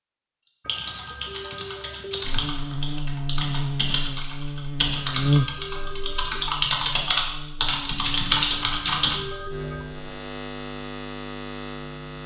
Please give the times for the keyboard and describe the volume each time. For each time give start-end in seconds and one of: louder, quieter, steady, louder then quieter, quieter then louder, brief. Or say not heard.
0.7-9.2 louder.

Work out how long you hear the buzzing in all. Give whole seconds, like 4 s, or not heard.
10 s.